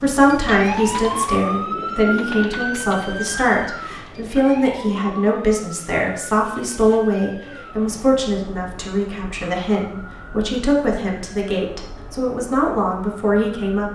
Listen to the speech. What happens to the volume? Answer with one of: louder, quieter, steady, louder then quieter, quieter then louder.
steady.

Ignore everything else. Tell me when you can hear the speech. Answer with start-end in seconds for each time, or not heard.
0.0-13.9.